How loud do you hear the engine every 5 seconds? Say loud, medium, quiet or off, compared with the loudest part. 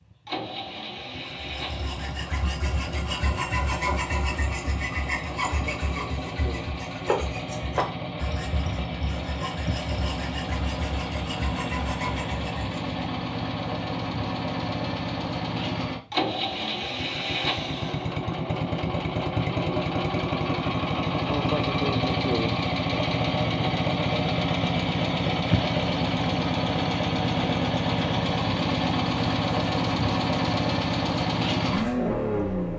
medium, medium, medium, loud, loud, loud, loud.